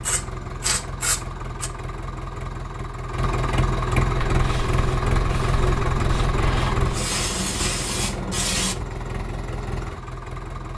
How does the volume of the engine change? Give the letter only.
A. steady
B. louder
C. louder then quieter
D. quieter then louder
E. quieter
C.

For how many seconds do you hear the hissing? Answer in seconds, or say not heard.
6 s.